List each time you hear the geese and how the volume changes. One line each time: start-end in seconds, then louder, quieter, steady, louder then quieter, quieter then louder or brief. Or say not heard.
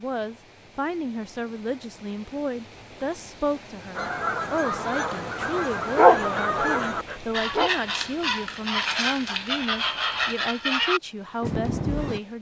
3.9-12.2 steady.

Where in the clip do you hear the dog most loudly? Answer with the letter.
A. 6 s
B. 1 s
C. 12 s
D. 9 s
A.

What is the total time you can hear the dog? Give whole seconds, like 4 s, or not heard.
2 s.